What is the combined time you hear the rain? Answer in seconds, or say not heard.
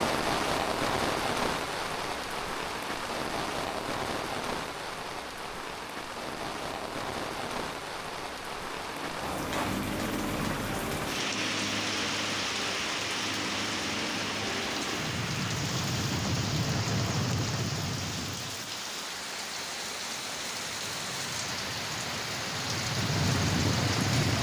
24 s.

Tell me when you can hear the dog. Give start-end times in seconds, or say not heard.
not heard.